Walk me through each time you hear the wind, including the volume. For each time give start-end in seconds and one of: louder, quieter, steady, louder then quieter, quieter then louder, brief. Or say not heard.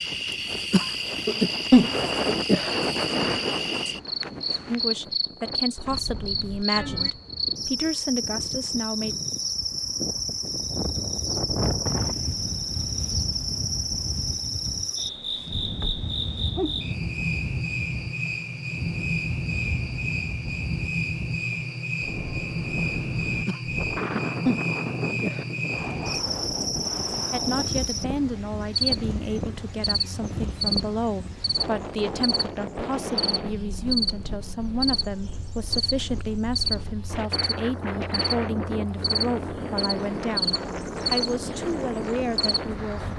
0.0-43.1 steady.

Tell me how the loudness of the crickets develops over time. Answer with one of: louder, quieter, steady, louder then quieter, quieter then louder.
steady.